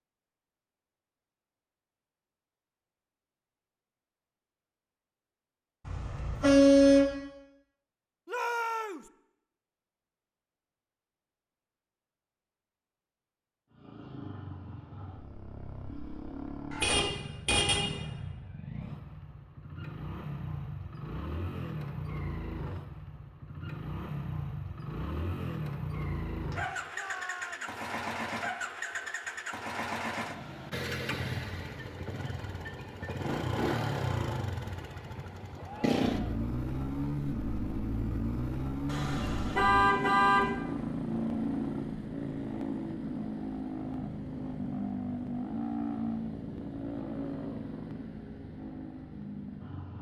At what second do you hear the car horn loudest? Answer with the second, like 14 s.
7 s.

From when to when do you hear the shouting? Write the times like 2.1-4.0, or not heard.
8.2-9.1, 26.6-27.7, 35.6-36.5.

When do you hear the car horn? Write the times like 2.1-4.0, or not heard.
5.8-7.2, 16.7-17.9, 38.9-40.5.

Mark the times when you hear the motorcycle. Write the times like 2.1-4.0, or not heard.
13.7-49.9.